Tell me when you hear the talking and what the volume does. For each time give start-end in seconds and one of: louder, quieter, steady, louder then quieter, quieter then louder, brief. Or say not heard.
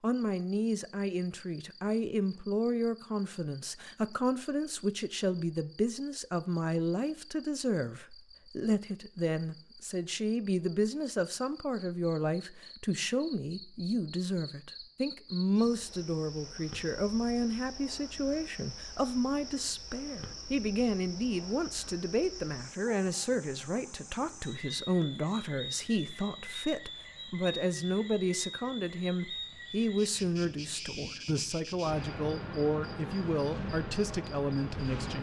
0.0-35.1 steady.